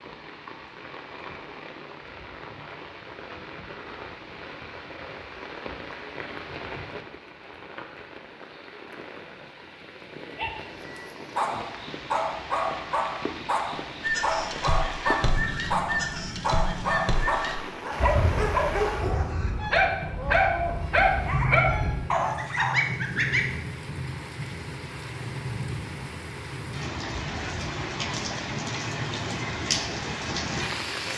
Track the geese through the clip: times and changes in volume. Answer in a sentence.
You can hear the geese from 14.0 to 23.4 s, getting quieter then louder.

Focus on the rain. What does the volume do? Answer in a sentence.
The loudness of the rain goes up.